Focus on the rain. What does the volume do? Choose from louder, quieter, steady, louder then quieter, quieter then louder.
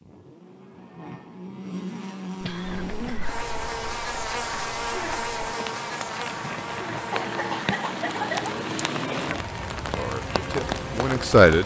louder.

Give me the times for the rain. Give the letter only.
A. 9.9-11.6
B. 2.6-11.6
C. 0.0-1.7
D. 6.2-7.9
B.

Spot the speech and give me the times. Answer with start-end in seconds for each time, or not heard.
9.9-11.6.